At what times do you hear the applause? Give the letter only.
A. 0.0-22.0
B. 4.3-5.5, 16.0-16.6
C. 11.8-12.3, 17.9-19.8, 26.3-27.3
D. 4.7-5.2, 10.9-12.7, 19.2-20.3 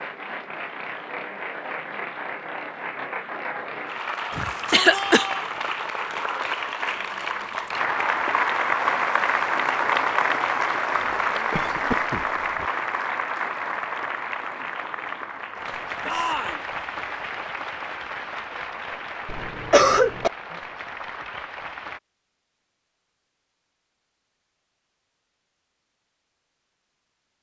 A.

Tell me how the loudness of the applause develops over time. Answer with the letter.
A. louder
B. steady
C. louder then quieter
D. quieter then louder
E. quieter
C.